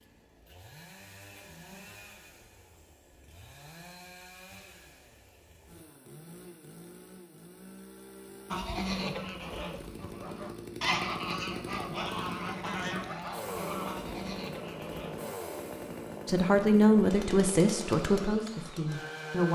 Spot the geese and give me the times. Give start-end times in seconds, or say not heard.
8.5-15.2.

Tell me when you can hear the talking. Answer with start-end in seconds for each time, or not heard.
16.2-19.5.